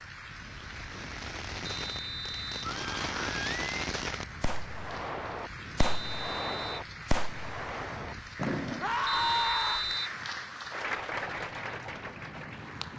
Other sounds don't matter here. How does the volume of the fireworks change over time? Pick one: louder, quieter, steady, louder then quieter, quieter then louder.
louder.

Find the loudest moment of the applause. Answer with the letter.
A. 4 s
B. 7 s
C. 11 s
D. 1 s
C.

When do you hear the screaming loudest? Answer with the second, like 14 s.
9 s.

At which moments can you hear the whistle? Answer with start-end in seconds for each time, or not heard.
1.6-2.6, 5.8-6.8, 9.1-10.2.